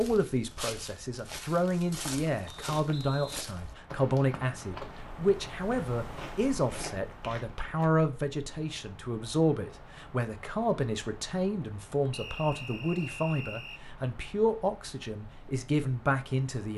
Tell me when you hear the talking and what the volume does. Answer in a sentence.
The talking can be heard from 0.0 to 16.7 s, at a steady volume.